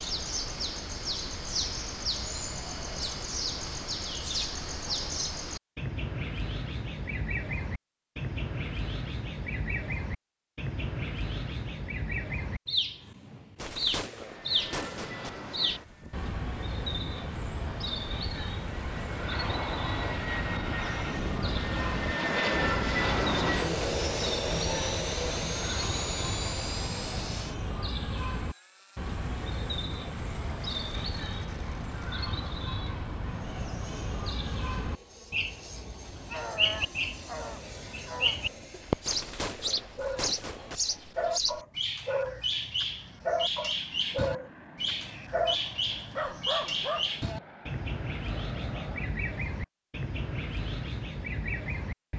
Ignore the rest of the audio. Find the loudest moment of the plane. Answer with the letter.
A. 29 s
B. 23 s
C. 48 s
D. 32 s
B.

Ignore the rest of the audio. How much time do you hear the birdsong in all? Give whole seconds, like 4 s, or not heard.
52 s.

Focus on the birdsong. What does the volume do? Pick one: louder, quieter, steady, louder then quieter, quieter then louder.
steady.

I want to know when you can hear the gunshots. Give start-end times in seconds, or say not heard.
13.6-15.3, 39.0-40.8.